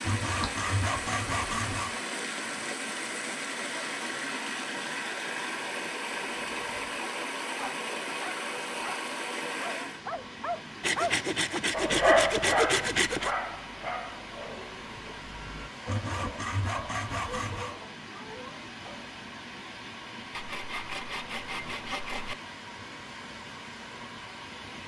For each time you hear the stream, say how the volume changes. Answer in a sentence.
You can hear the stream from 0.0 to 24.8 s, getting quieter.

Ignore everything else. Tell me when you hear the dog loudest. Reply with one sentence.
The loudest moment of the dog is at 12 seconds.